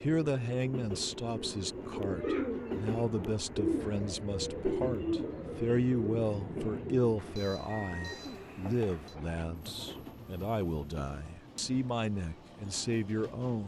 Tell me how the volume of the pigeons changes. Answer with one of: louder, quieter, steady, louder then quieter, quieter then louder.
quieter.